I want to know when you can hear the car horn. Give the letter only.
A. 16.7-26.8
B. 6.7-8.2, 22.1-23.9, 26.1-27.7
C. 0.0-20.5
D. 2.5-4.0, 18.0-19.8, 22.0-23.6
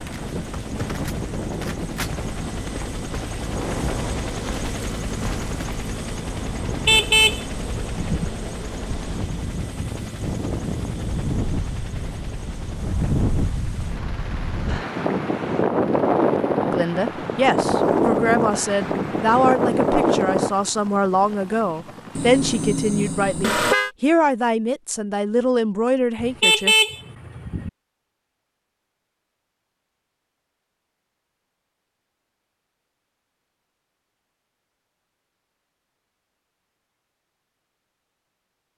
B.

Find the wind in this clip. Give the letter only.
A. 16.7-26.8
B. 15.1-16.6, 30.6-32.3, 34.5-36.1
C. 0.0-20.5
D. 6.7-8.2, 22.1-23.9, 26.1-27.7
C.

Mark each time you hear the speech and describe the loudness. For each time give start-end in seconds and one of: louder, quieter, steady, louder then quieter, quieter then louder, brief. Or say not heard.
16.7-26.8 steady.